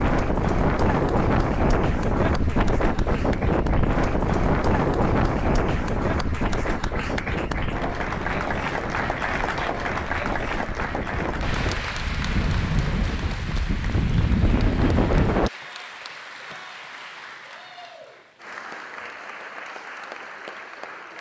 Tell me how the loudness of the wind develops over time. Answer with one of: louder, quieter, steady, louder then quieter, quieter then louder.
quieter then louder.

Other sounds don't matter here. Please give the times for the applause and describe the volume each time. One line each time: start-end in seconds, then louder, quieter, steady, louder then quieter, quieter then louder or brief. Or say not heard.
0.0-21.1 louder then quieter.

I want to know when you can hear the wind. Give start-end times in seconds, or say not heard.
0.0-15.5.